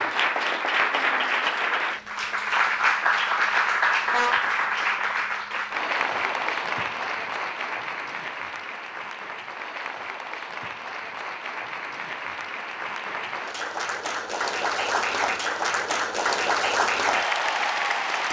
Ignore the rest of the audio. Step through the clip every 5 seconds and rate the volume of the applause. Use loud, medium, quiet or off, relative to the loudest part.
loud, medium, medium, loud.